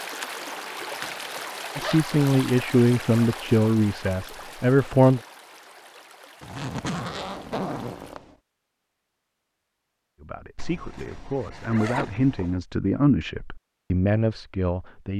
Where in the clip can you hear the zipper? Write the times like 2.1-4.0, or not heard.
0.8-2.1, 6.4-8.3, 10.6-12.6.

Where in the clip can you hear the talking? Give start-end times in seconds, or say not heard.
1.8-5.2, 10.2-15.1.